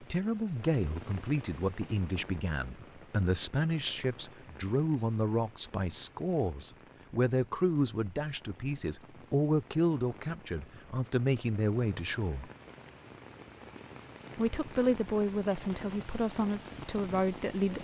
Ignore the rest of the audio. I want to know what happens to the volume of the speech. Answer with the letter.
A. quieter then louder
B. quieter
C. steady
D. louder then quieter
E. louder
C.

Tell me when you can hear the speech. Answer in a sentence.
The speech can be heard from 0.0 to 12.5 s and from 14.3 to 17.7 s.